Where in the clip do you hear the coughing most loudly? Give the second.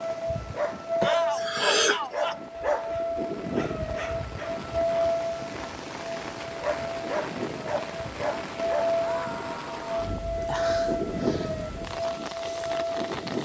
2 s.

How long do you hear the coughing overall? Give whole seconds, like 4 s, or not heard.
2 s.